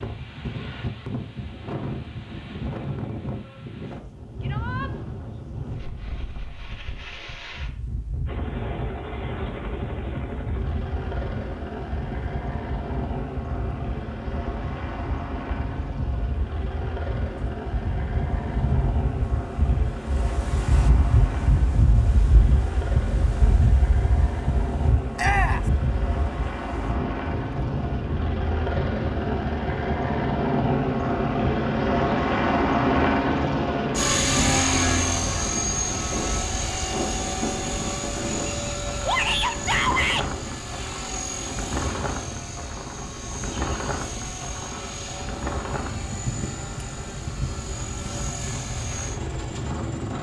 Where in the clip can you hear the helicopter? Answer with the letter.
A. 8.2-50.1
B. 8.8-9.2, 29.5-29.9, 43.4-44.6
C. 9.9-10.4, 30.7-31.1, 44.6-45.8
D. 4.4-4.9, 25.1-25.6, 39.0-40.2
A.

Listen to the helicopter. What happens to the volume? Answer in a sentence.
The loudness of the helicopter goes up, then down.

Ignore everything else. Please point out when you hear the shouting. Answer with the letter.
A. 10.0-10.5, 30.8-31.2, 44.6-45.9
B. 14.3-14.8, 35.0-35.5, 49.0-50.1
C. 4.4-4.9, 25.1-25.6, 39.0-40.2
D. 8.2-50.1
C.